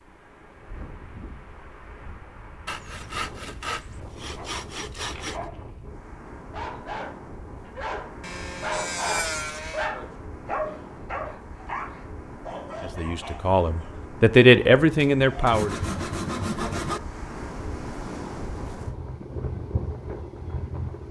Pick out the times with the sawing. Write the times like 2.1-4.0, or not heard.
2.6-5.4, 8.2-9.9, 15.0-17.0.